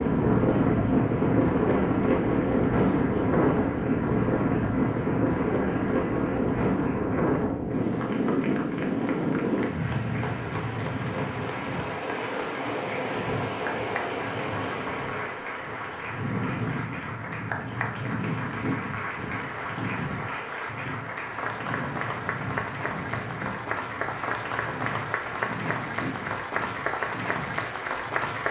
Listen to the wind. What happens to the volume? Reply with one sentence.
The volume of the wind goes down.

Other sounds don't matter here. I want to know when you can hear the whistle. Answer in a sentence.
The whistle can't be heard in this clip.